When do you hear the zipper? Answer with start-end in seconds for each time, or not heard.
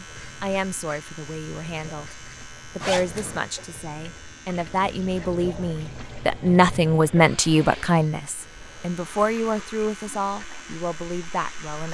2.8-3.5.